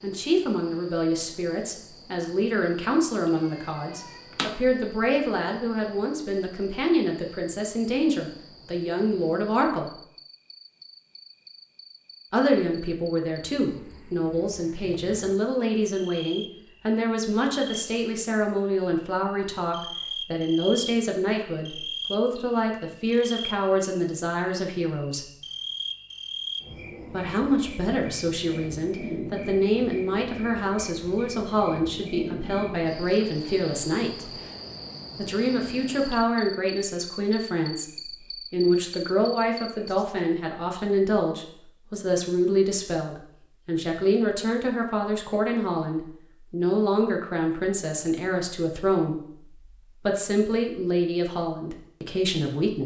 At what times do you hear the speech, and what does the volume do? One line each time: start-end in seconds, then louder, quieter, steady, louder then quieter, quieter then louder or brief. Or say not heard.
0.0-9.9 steady
12.3-25.3 steady
27.1-34.4 steady
35.1-52.8 steady.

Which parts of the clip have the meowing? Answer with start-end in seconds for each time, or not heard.
3.3-4.7.